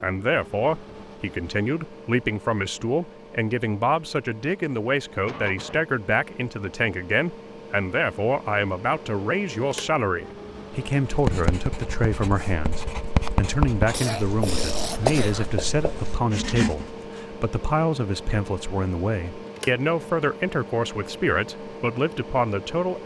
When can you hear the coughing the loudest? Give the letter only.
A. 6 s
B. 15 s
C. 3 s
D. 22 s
B.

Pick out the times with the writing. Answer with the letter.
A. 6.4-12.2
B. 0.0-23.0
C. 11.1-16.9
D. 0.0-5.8
C.